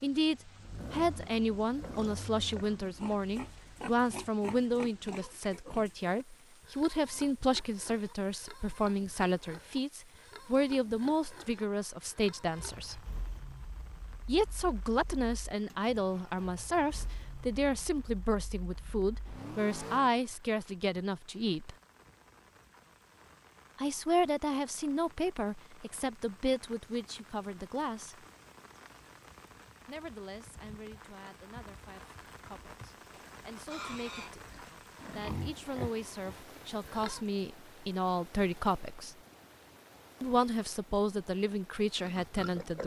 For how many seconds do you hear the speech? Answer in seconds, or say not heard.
37 s.